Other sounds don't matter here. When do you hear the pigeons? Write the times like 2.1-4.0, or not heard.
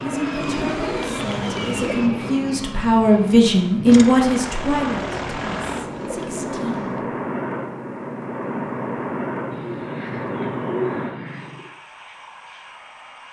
0.4-2.0, 4.7-7.0, 9.5-11.7.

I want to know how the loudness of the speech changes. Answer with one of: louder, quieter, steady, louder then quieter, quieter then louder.
louder then quieter.